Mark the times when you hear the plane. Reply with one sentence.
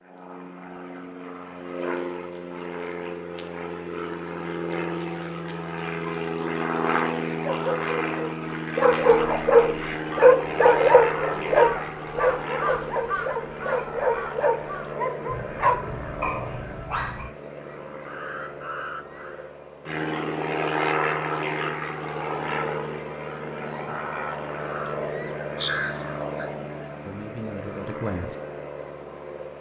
You can hear the plane from 0.0 to 29.5 s.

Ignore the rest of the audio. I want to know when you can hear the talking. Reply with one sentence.
You can hear the talking from 27.1 to 28.4 s.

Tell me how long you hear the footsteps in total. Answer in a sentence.
The footsteps can't be heard in this clip.